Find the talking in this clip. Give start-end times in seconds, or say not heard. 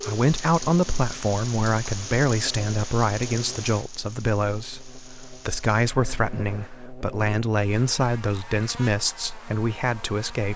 0.0-10.5.